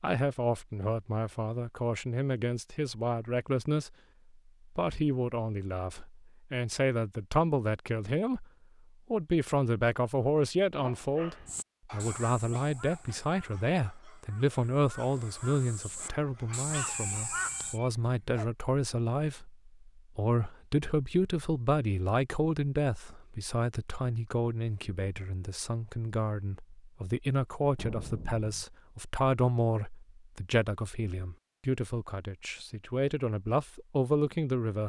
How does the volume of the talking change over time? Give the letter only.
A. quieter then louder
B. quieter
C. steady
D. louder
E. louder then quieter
C.